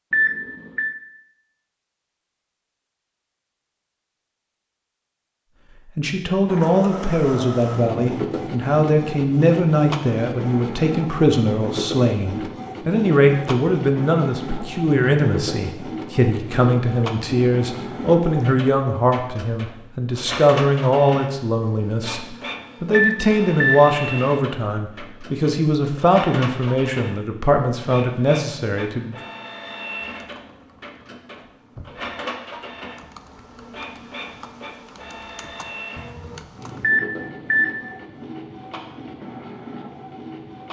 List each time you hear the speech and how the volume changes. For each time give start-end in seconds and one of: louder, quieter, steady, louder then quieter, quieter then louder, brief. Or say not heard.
6.0-29.1 steady.